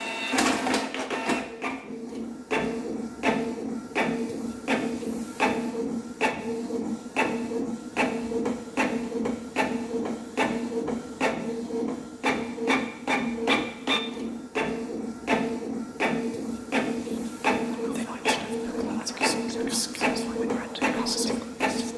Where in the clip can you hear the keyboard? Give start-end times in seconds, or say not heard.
not heard.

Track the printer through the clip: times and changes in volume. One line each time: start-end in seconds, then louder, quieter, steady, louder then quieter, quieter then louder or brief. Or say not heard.
0.0-21.9 steady.